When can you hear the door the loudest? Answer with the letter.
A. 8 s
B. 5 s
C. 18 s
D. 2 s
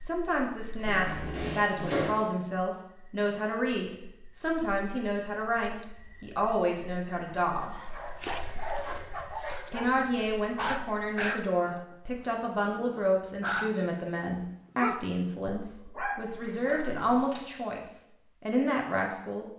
D.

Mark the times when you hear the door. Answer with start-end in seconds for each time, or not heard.
0.8-2.2, 16.6-17.5.